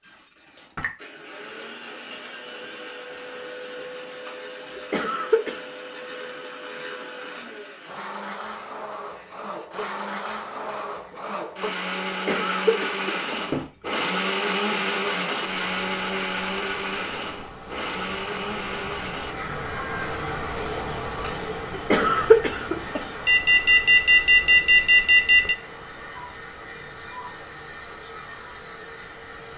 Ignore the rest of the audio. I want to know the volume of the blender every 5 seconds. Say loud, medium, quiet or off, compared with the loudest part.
medium, medium, loud, loud, medium, quiet.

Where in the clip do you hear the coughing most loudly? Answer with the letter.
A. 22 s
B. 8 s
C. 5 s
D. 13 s
A.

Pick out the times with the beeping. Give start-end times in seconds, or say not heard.
23.2-25.6.